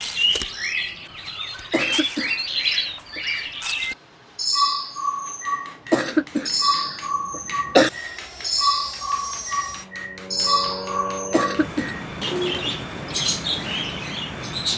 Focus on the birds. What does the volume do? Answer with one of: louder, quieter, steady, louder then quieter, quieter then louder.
steady.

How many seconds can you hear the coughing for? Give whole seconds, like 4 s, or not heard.
4 s.